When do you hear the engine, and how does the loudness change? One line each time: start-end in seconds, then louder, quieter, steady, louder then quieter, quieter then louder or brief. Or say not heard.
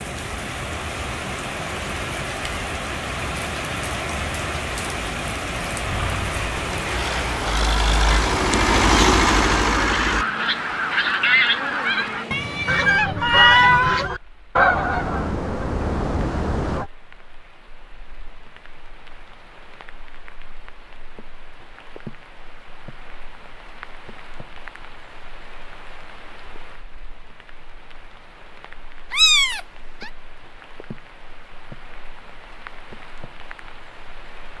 5.8-10.2 louder.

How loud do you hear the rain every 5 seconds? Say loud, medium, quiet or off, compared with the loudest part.
loud, loud, medium, quiet, quiet, quiet, quiet.